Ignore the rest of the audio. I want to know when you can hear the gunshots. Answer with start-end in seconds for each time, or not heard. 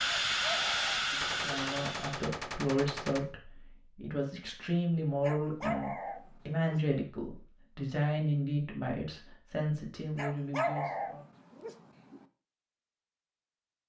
1.2-3.2.